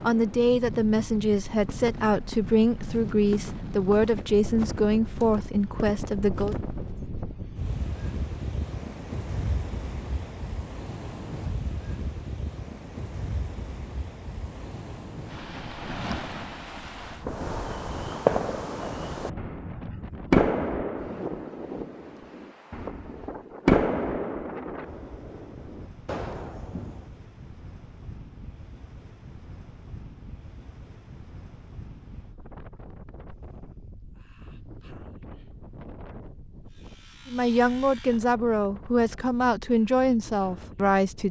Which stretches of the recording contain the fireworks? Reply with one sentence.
The fireworks can be heard from 17.2 to 27.0 s.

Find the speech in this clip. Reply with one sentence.
The speech can be heard from 0.0 to 6.5 s and from 37.2 to 41.2 s.